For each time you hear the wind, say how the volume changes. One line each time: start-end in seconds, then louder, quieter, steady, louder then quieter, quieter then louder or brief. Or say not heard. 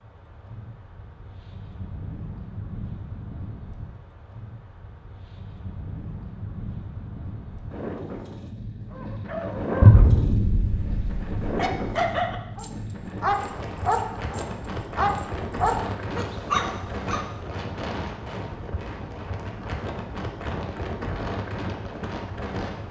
0.0-22.8 louder.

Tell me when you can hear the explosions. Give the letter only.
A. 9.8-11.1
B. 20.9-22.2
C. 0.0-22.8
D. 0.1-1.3
A.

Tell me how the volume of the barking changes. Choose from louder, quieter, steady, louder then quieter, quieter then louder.
louder.